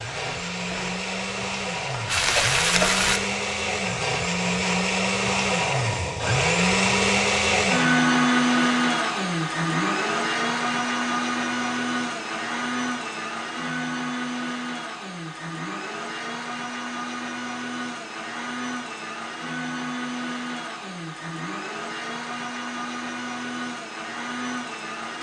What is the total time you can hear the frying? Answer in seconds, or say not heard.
3 s.